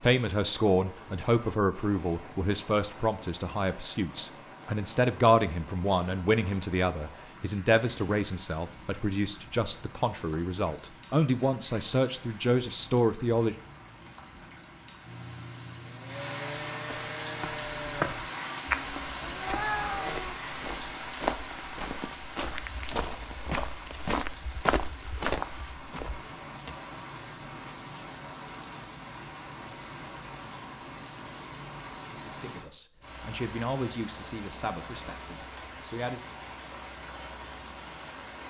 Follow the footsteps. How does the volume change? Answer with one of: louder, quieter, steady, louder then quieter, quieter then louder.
quieter then louder.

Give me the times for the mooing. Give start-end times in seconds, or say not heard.
15.0-20.5.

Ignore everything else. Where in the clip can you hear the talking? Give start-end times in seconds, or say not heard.
0.0-13.6, 32.2-36.2.